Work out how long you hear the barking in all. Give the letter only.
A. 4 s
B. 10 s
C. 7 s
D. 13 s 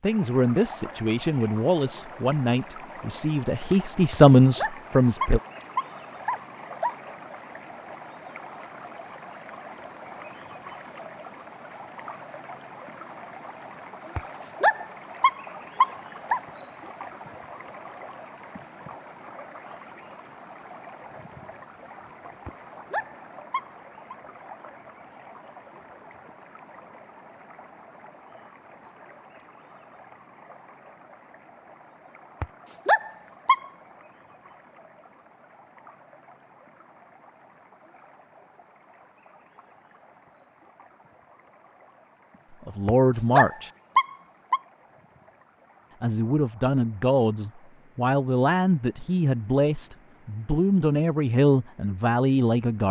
B.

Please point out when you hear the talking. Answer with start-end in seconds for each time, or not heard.
0.0-5.4, 42.6-43.7, 46.0-52.8.